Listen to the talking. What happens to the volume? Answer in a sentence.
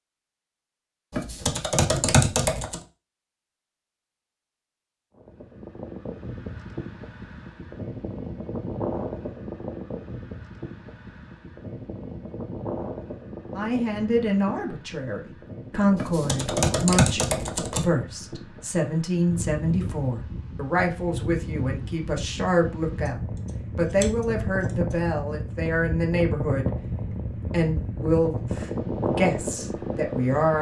The loudness of the talking stays about the same.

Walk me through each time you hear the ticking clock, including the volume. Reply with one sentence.
You can't hear the ticking clock here.